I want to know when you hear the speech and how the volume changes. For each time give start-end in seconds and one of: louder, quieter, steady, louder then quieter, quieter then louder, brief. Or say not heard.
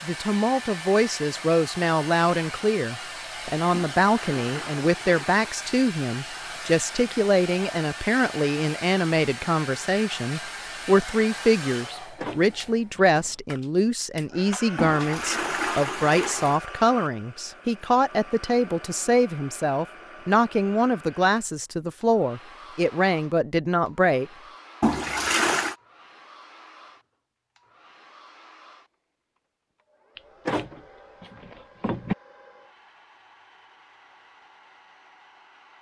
0.0-24.2 steady.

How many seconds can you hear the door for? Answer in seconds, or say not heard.
3 s.